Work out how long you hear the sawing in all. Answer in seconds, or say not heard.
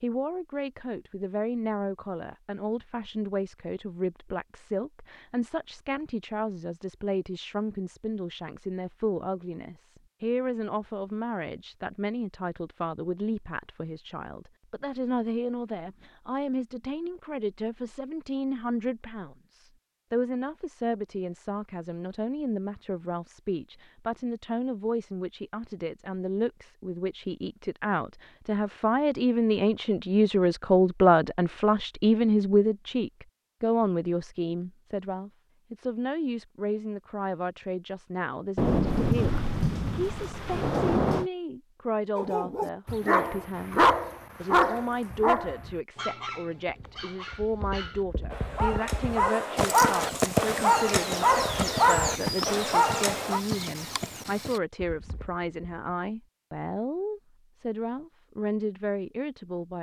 not heard.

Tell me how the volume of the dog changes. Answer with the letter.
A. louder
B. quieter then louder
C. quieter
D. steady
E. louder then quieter
B.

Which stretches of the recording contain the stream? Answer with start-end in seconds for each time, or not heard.
not heard.